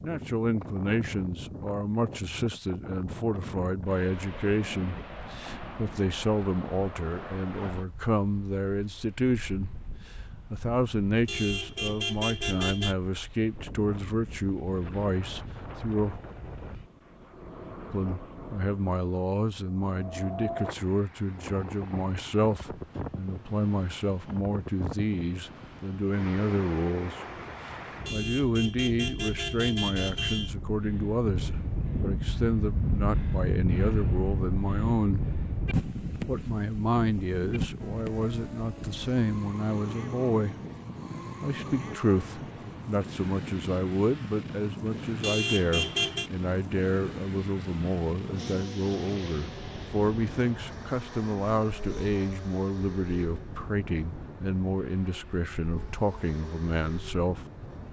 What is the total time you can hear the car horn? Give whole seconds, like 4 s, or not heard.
5 s.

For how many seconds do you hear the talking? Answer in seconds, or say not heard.
53 s.